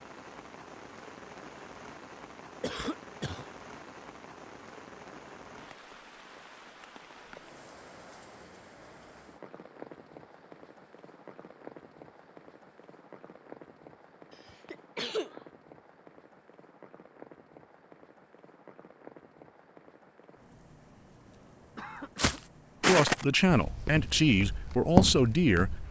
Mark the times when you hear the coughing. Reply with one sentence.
You can hear the coughing from 2.6 to 3.5 s, from 14.3 to 15.4 s and from 21.3 to 22.4 s.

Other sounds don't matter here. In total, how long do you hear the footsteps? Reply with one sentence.
The footsteps can be heard for 4 seconds in total.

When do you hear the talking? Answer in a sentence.
You can hear the talking from 22.9 to 25.8 s.